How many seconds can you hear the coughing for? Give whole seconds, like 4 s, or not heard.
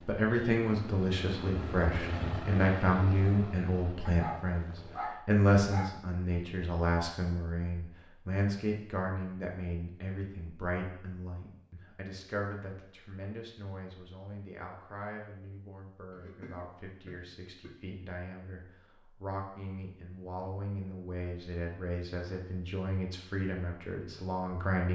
2 s.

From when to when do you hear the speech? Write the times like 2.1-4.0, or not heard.
0.1-24.9.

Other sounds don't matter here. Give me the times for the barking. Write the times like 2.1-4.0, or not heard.
4.0-6.0.